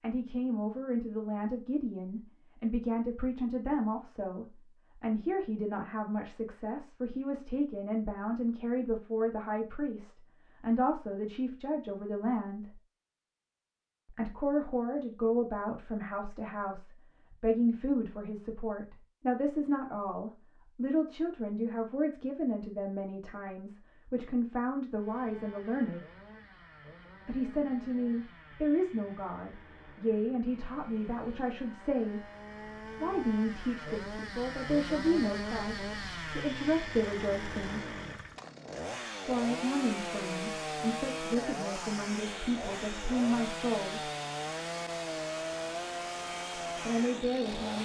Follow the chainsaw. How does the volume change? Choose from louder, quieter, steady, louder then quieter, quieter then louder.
louder.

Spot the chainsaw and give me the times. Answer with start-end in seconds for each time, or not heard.
24.9-47.8.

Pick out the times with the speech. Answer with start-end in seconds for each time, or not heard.
0.0-12.8, 14.1-26.0, 27.2-32.2, 33.0-38.0, 39.2-44.0, 46.8-47.8.